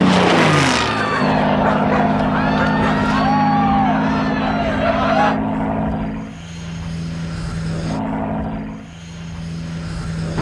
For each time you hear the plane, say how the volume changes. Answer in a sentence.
The plane can be heard from 0.0 to 10.3 s, getting quieter.